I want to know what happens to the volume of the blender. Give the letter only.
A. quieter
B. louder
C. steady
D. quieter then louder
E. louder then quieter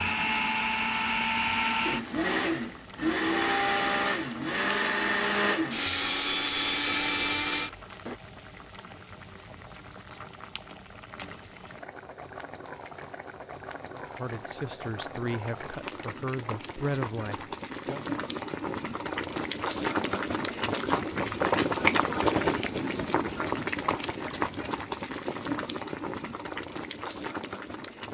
C.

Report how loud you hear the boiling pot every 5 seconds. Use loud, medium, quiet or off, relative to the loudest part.
quiet, quiet, quiet, medium, loud, medium.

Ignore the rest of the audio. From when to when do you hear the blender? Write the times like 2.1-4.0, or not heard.
0.0-8.2.